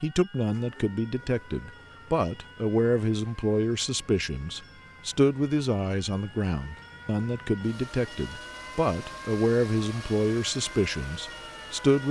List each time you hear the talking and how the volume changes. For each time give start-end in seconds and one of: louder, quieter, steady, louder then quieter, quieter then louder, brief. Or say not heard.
0.0-12.0 steady.